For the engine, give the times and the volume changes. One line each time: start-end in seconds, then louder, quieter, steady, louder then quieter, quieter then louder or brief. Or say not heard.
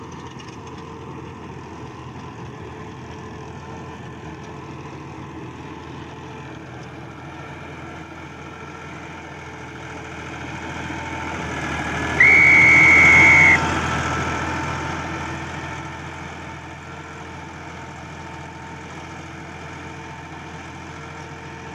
0.0-21.7 louder then quieter.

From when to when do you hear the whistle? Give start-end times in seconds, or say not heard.
12.2-13.7.